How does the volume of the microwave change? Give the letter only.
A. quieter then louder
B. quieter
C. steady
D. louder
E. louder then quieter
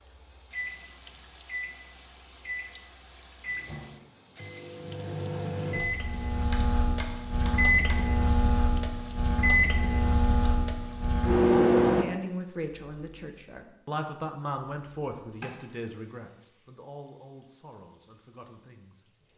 D.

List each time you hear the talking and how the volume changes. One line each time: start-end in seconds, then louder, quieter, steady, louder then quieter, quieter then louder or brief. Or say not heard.
11.8-19.1 quieter.